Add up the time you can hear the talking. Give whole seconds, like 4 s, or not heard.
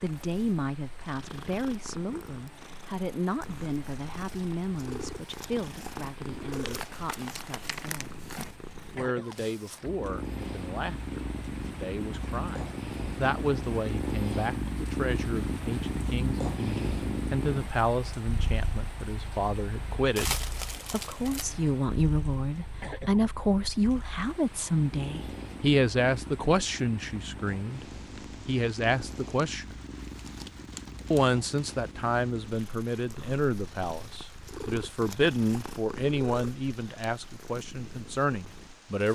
36 s.